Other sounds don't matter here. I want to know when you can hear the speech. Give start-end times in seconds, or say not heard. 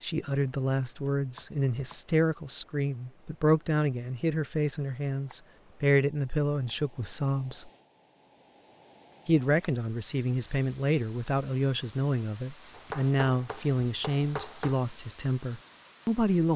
0.0-7.7, 9.2-16.5.